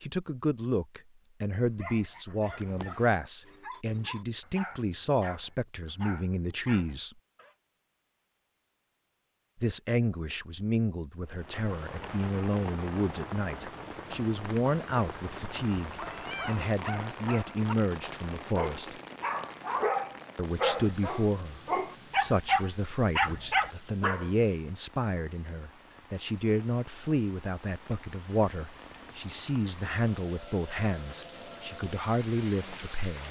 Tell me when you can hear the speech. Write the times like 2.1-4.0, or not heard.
0.0-7.2, 9.6-18.9, 20.4-33.2.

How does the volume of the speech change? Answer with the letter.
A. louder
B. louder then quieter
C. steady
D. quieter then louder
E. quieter
C.